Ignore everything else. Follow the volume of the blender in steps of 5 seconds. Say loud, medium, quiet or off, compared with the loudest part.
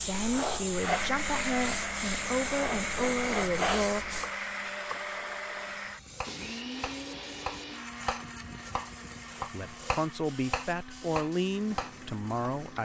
loud, medium, quiet.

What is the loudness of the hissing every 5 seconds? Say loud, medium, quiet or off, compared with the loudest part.
loud, quiet, quiet.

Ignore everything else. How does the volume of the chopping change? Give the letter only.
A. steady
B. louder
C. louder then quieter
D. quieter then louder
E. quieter
B.